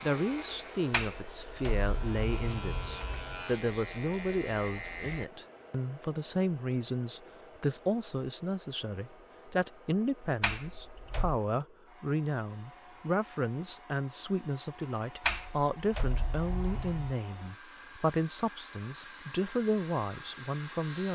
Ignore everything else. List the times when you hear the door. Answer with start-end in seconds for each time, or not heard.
0.9-3.4, 10.4-11.4, 15.2-17.1.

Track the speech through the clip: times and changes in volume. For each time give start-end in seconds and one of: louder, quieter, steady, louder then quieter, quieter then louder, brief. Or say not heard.
0.0-21.1 steady.